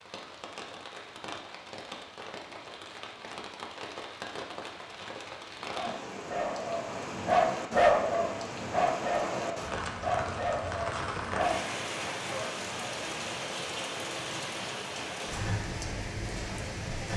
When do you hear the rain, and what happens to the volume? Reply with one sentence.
The rain can be heard from 0.0 to 17.1 s, getting louder.